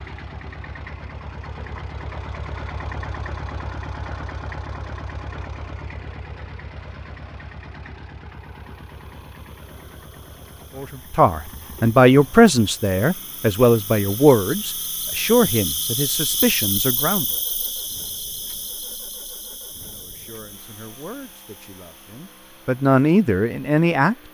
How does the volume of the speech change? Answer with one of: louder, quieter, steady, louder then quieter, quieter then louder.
quieter then louder.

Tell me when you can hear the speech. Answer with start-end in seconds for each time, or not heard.
10.8-17.4, 19.9-24.1.